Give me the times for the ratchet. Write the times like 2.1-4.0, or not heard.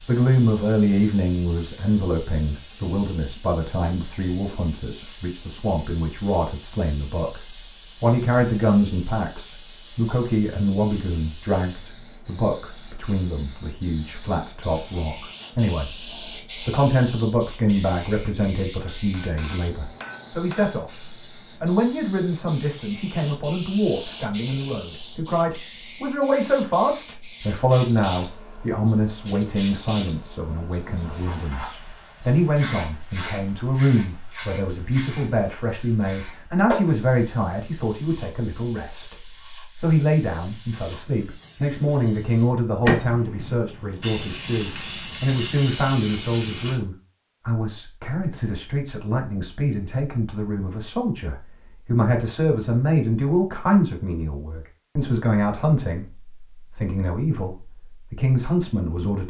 not heard.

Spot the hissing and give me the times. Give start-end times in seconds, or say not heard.
0.0-46.8.